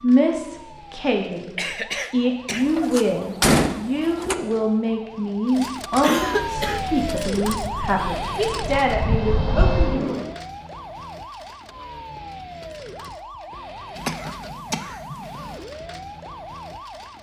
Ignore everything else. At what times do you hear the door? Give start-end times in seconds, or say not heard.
2.5-4.3.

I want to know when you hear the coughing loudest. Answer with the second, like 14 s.
6 s.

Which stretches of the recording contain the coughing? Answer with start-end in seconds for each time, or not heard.
1.6-2.6, 6.0-6.8, 13.9-15.6.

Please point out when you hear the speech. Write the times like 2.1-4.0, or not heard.
0.0-1.5, 2.1-10.2.